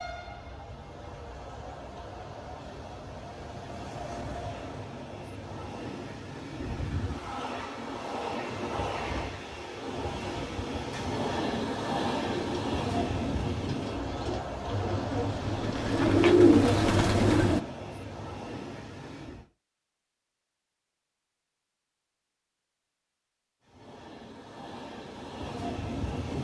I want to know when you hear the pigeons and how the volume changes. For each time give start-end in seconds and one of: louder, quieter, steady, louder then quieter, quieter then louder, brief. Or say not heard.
12.2-17.6 louder.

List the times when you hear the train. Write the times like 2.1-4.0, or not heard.
0.0-19.4, 23.6-26.4.